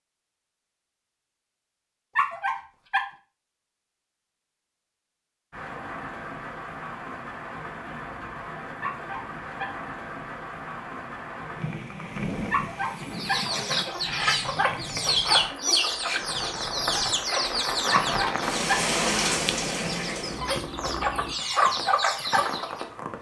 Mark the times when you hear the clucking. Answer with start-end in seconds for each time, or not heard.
12.8-22.9.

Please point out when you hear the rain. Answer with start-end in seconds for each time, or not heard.
5.5-23.1.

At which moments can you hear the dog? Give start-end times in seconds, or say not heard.
2.1-3.1, 8.8-9.8, 12.5-13.4, 17.9-18.9.